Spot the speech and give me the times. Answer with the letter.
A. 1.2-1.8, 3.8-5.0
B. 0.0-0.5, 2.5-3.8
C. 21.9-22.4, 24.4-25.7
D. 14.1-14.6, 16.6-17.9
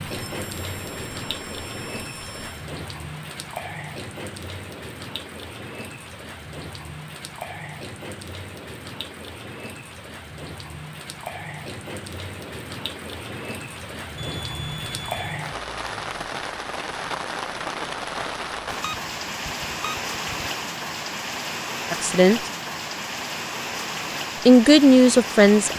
C.